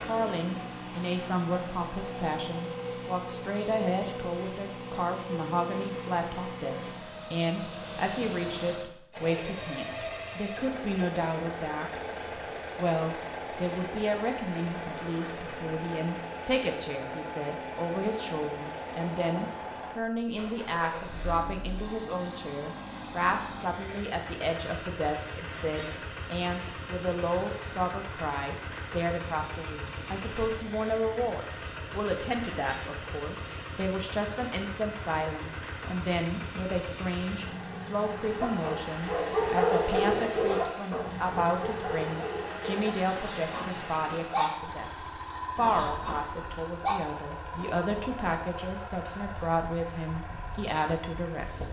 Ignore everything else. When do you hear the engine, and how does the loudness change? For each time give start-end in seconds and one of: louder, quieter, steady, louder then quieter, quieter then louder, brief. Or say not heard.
0.0-51.6 steady.